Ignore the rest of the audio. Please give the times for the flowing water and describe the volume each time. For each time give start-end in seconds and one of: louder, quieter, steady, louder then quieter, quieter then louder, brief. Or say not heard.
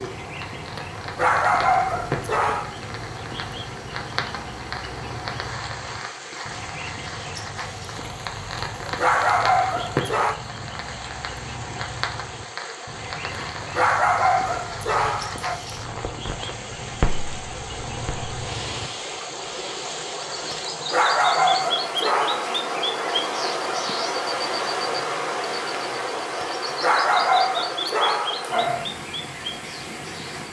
0.0-30.4 louder.